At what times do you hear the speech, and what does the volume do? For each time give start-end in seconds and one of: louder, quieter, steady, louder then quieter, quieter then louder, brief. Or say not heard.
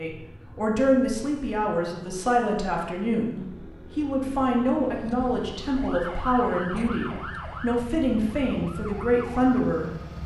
0.0-9.9 steady.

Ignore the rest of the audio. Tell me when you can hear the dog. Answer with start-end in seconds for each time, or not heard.
not heard.